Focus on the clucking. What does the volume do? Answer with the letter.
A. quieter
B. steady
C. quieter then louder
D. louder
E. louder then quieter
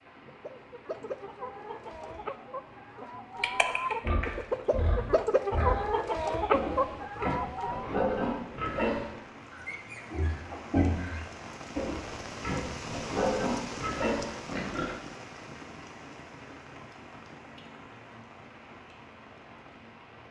D.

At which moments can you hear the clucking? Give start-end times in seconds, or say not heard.
0.2-7.9.